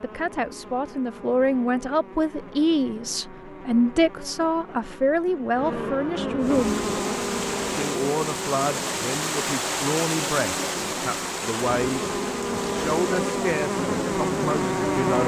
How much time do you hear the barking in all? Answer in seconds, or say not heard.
not heard.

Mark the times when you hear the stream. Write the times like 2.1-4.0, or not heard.
6.4-15.2.